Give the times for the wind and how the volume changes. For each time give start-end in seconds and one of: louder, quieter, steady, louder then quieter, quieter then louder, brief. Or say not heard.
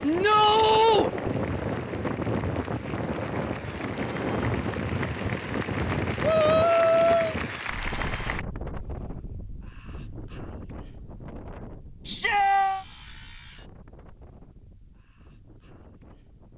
0.0-16.5 quieter.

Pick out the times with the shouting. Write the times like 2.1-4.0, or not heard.
0.0-1.1, 6.2-7.3, 12.1-12.8.